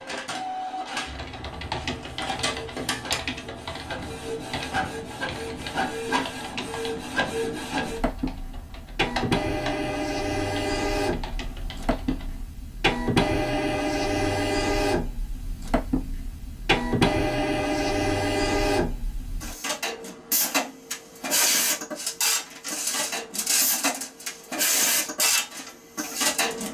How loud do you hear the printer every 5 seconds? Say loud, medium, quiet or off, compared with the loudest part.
medium, loud, loud, loud, loud, loud.